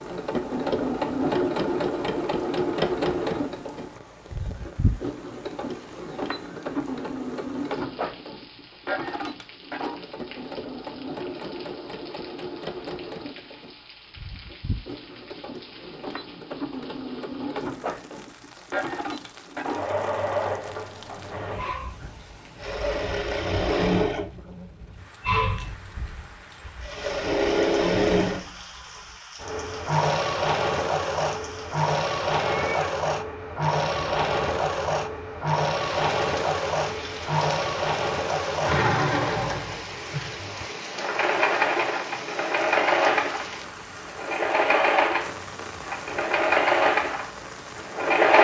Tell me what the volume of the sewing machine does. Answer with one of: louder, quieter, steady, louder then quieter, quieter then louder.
quieter then louder.